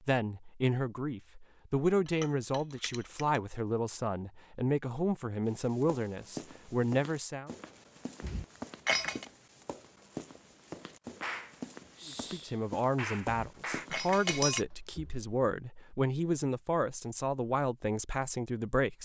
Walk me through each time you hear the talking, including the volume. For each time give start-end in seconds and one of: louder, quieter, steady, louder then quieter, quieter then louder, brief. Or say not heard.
0.1-7.5 steady
12.1-18.9 steady.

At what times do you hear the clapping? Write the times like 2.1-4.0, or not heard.
11.2-13.8.